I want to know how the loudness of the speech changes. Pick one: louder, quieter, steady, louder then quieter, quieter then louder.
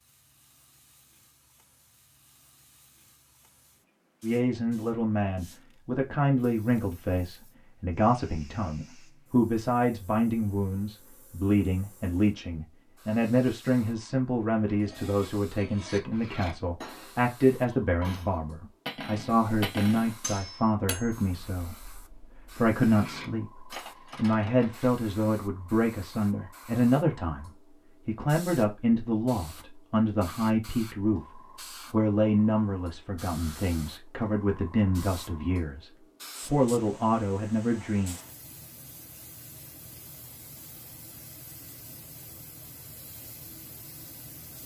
steady.